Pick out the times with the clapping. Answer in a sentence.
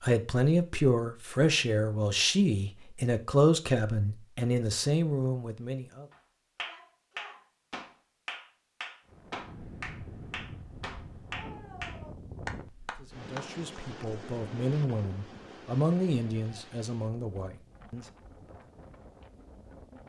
You can hear the clapping from 5.9 to 13.8 s.